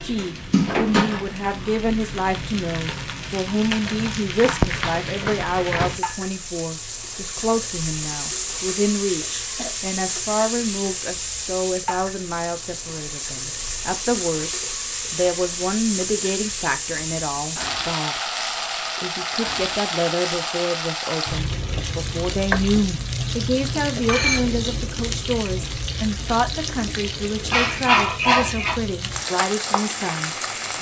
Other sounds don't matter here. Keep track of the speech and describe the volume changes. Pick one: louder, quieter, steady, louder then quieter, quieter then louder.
steady.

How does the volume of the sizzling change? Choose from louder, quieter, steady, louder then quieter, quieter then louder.
steady.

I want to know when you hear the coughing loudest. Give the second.
28 s.